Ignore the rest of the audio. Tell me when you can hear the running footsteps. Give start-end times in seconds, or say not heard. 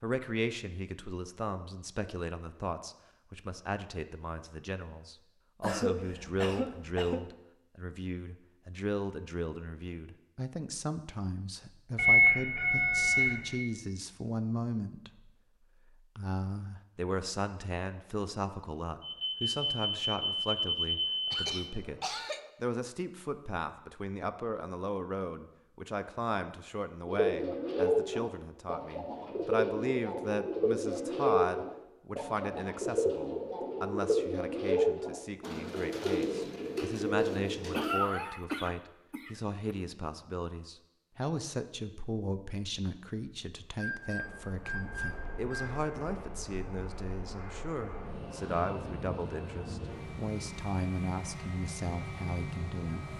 not heard.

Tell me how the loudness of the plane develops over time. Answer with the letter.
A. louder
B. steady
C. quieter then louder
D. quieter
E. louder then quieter
A.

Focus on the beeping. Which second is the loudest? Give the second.
12 s.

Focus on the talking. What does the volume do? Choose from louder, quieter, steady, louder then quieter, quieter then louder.
steady.